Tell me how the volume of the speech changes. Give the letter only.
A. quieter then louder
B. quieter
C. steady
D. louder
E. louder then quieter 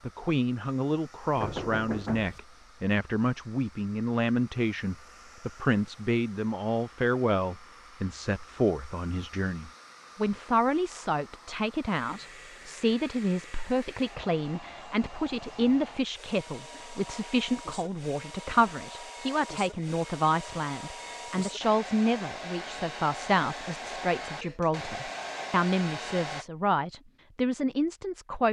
C.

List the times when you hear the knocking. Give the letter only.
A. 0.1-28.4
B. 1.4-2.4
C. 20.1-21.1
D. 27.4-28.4
B.